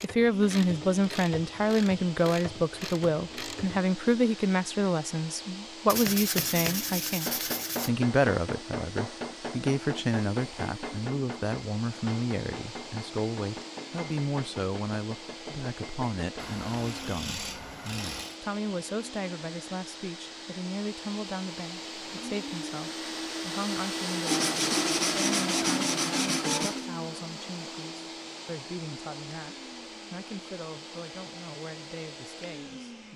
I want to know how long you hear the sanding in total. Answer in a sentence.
The sanding can be heard for 7 seconds in total.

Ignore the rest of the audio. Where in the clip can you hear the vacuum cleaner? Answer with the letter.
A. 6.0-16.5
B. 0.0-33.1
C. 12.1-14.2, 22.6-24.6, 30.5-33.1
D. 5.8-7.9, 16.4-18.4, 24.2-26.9
B.